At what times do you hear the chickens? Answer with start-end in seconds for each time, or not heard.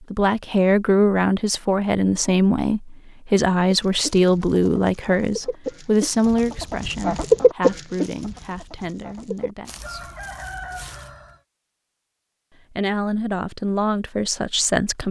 3.6-11.3.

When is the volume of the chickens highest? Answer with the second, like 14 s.
7 s.